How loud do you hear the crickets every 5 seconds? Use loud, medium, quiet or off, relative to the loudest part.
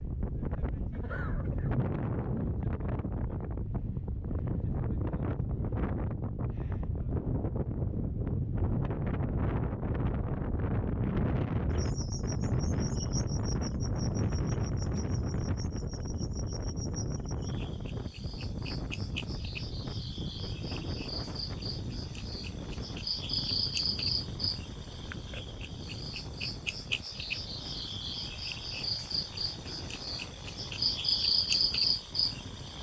off, off, quiet, quiet, medium, medium, loud.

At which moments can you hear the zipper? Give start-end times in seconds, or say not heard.
not heard.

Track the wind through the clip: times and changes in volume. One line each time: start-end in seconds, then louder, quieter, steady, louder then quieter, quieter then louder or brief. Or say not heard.
0.0-32.7 quieter.